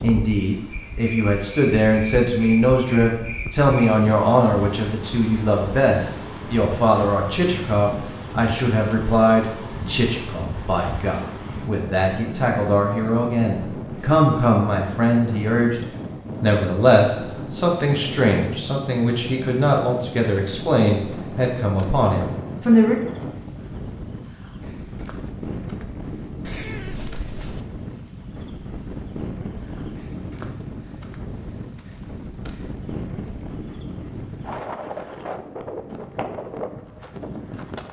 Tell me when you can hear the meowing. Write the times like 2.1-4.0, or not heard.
26.4-27.6.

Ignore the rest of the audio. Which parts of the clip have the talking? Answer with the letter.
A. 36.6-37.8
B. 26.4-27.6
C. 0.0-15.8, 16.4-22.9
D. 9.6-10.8
C.